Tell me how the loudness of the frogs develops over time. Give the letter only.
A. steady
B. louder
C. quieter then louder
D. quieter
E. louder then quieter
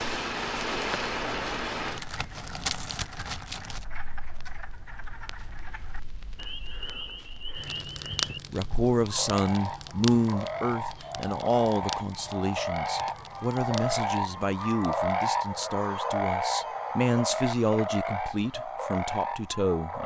B.